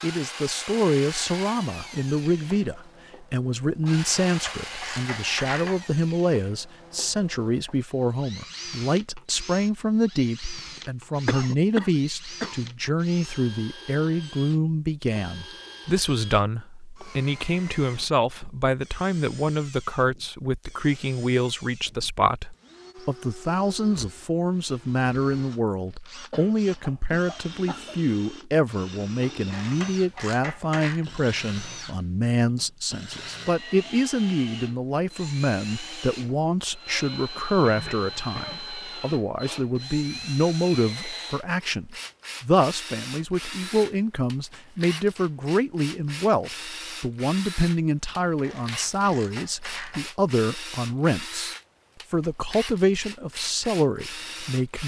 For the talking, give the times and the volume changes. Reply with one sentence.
The talking can be heard from 0.0 to 54.8 s, at a steady volume.